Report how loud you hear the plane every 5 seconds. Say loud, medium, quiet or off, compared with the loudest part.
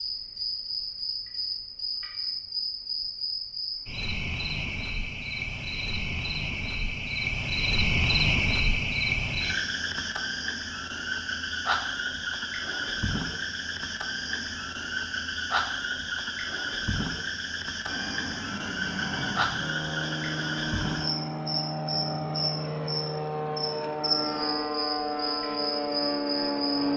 off, off, off, medium, loud, loud.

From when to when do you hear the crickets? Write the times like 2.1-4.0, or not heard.
0.0-26.9.